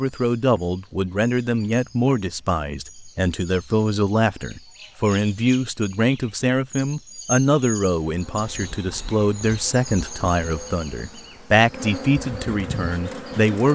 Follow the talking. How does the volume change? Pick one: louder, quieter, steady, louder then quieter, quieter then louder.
steady.